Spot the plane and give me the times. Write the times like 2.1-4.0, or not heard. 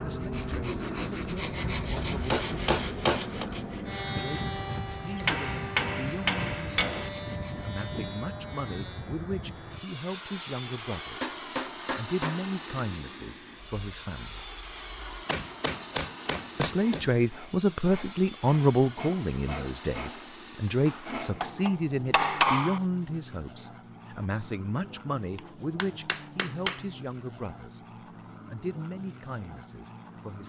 0.0-30.4.